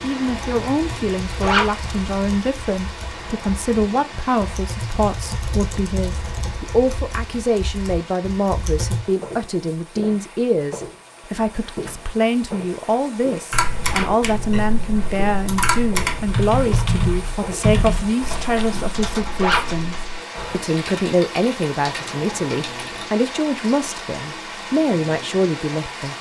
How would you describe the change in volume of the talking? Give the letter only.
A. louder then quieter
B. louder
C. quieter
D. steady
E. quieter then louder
D.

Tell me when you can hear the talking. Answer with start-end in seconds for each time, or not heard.
0.0-26.1.